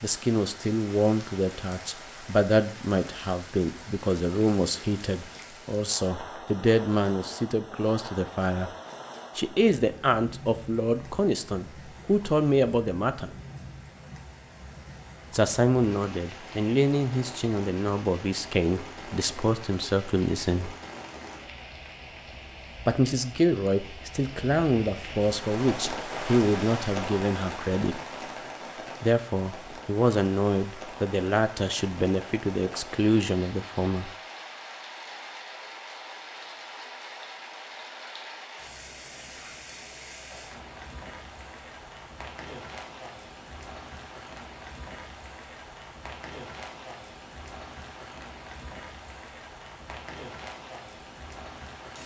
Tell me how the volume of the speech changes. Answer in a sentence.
The loudness of the speech stays about the same.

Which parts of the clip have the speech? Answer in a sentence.
You can hear the speech from 0.0 to 8.7 s, from 9.3 to 13.3 s, from 15.3 to 20.8 s, from 22.9 to 28.0 s and from 29.0 to 34.1 s.